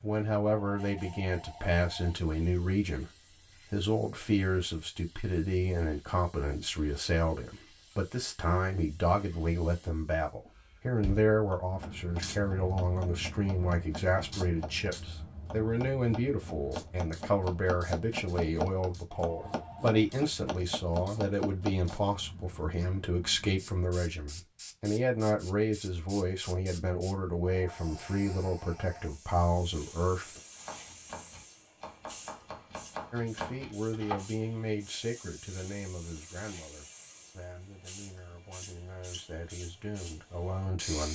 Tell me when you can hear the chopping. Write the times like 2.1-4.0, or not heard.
11.4-21.9, 30.6-34.7.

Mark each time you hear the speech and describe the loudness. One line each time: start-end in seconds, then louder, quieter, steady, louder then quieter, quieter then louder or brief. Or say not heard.
0.0-30.4 steady
33.1-41.1 quieter then louder.